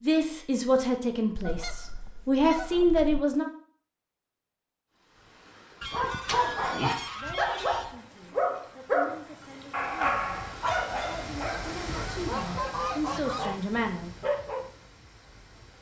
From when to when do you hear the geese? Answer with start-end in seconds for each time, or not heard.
1.4-3.2, 5.8-8.0, 11.8-13.7.